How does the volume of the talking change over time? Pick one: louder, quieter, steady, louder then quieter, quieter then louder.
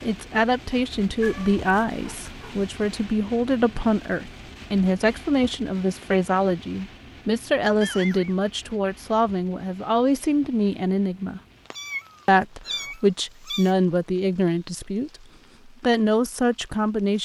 steady.